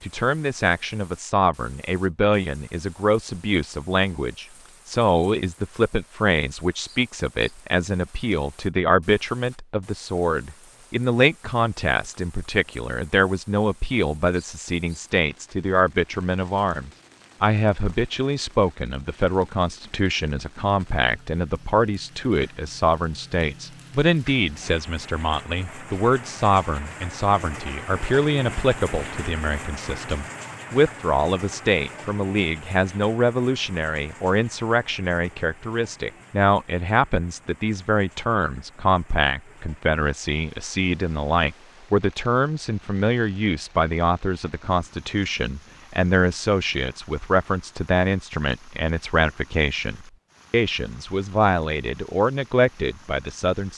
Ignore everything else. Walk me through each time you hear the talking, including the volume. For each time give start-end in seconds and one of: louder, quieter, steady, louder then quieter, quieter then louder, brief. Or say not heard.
0.0-53.7 steady.